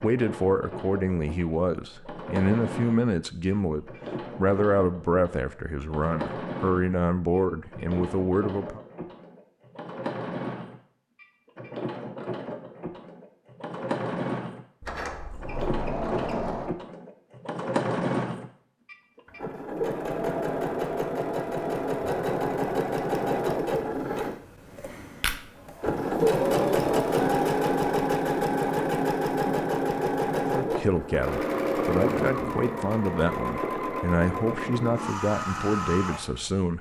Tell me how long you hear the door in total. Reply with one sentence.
You can hear the door for 2 seconds altogether.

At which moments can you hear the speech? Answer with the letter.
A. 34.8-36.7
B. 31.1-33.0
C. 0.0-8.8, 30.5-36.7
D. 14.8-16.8
C.